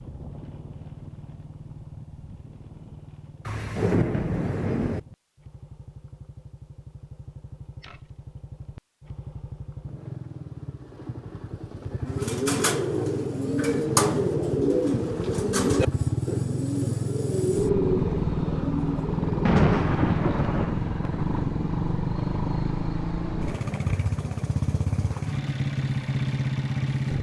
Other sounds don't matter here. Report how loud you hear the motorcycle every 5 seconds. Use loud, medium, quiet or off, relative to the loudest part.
quiet, quiet, medium, loud, loud, loud.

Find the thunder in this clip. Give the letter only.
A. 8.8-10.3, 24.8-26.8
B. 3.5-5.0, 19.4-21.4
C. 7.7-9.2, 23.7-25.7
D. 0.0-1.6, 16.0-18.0
B.